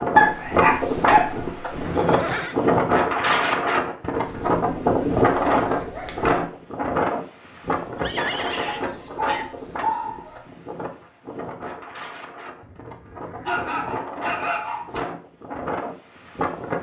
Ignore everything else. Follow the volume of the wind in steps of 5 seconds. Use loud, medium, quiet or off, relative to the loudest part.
loud, loud, quiet, medium.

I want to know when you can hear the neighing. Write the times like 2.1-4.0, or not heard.
1.7-2.6, 7.6-8.9, 12.6-13.7.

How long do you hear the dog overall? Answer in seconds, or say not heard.
7 s.